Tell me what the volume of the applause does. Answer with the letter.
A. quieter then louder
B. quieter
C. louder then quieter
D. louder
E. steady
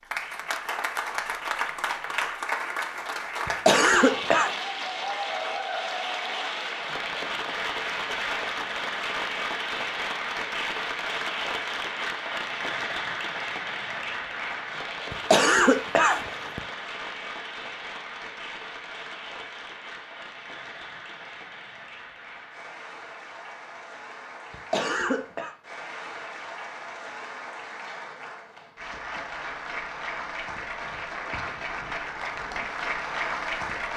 A.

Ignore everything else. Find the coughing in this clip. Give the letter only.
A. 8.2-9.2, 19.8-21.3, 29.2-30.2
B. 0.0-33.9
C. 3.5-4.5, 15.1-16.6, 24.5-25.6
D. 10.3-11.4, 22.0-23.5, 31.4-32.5
C.